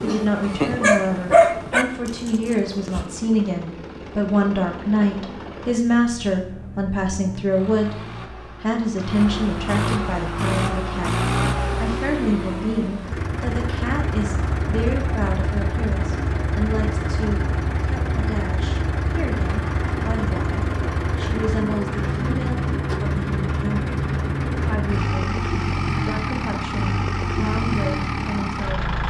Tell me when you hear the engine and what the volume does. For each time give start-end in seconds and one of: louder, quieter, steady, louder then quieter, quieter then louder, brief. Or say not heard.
0.1-29.0 louder.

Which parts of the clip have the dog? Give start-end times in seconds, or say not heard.
0.0-3.0.